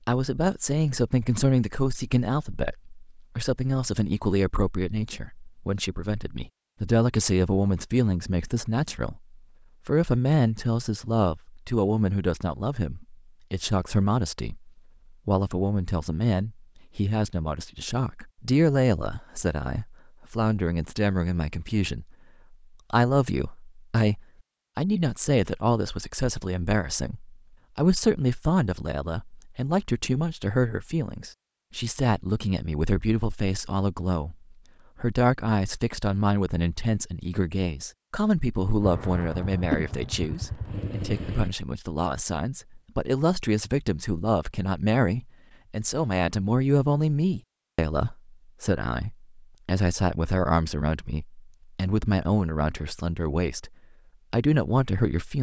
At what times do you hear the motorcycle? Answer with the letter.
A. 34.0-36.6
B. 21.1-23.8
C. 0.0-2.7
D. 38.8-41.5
D.